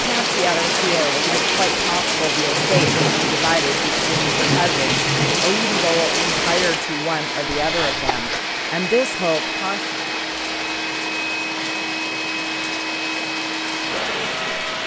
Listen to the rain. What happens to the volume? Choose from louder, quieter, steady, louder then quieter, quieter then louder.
quieter.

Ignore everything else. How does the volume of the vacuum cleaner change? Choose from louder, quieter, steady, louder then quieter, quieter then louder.
steady.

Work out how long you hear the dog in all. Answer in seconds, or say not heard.
not heard.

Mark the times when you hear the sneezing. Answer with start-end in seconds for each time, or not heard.
7.5-8.4.